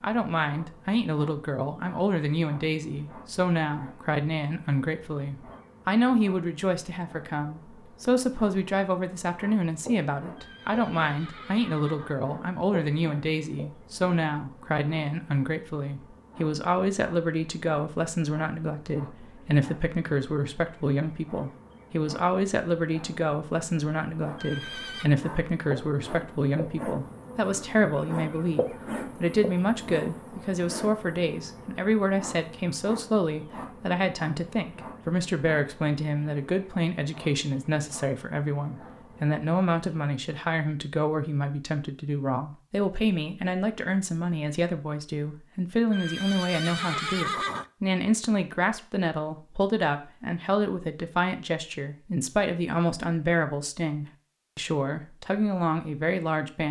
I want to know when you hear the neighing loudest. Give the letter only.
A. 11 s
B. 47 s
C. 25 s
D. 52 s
B.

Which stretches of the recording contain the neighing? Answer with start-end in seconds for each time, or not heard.
10.3-12.2, 24.4-25.1, 45.9-47.6.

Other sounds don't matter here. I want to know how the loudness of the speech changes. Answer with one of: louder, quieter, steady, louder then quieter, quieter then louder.
steady.